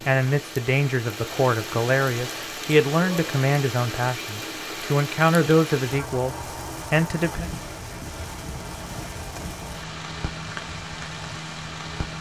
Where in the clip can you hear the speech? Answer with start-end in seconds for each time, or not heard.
0.0-7.5.